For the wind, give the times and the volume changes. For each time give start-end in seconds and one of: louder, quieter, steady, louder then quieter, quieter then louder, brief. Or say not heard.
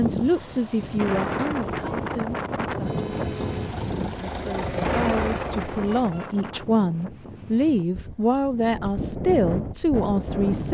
0.0-10.6 quieter then louder.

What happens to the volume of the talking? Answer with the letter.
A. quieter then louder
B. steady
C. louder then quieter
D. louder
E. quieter
A.